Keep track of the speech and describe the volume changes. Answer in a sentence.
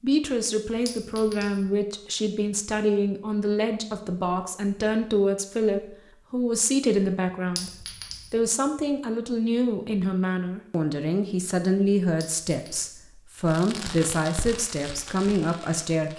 The loudness of the speech stays about the same.